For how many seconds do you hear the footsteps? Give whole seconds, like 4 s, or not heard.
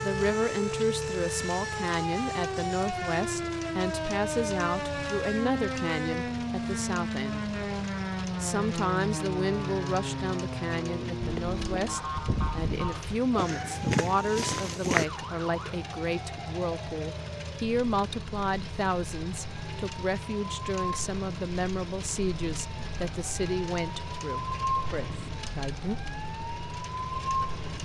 4 s.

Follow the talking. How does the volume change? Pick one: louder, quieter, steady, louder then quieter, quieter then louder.
steady.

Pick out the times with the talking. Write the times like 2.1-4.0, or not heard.
0.0-7.5, 8.4-25.9.